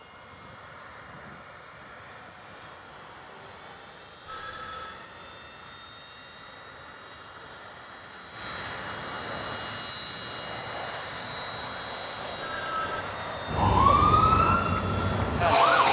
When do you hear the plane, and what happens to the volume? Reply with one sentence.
The plane can be heard from 0.0 to 15.6 s, getting louder.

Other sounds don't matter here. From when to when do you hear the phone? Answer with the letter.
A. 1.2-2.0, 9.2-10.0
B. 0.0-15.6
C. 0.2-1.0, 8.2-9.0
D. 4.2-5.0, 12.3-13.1
D.